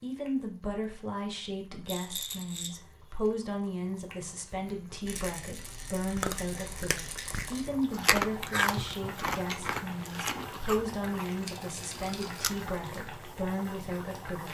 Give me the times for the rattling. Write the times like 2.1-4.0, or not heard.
1.9-2.8, 5.0-7.7, 11.4-12.5.